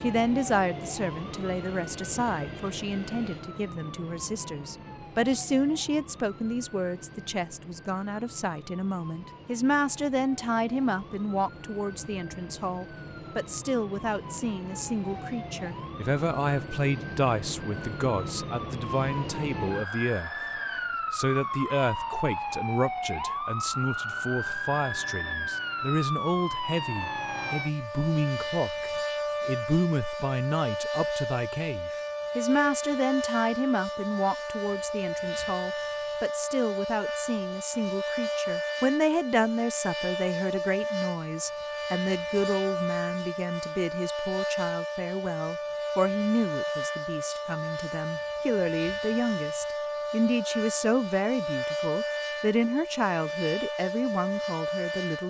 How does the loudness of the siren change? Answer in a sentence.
The volume of the siren goes up.